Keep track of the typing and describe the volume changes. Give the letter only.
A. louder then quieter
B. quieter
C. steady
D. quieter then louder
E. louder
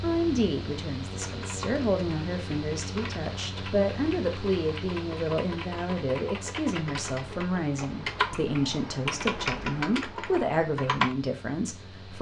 E.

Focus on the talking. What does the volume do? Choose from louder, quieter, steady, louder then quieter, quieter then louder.
steady.